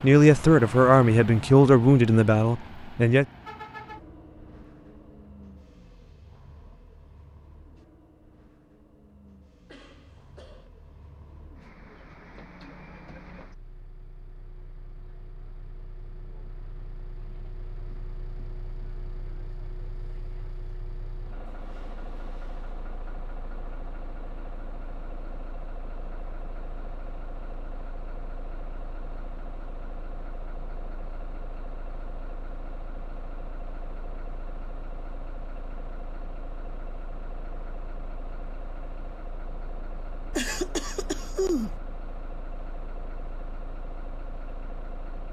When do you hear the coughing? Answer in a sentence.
The coughing can be heard from 9.7 to 10.7 s and from 40.3 to 41.8 s.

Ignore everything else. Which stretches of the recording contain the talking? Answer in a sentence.
The talking can be heard from 0.0 to 3.2 s.